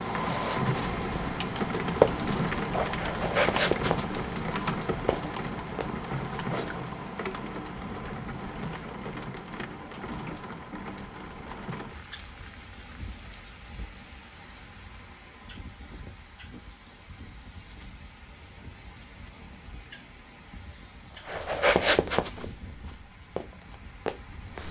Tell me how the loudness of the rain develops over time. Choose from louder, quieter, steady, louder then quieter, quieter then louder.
quieter.